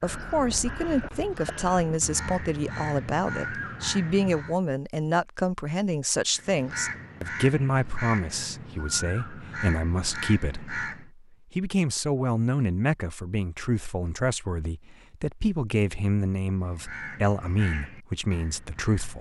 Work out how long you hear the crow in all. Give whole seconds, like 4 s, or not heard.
12 s.